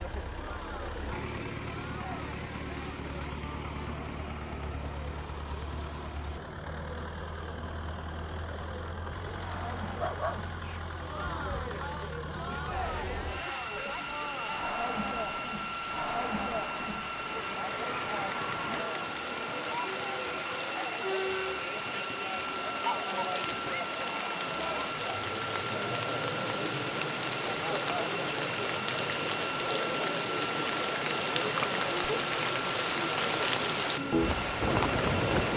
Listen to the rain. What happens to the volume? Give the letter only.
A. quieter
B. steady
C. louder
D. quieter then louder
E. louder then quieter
C.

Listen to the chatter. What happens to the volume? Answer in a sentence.
The volume of the chatter goes up.